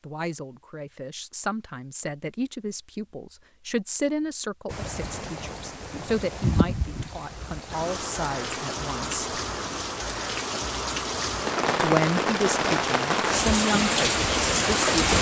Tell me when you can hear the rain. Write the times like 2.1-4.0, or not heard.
4.7-15.1.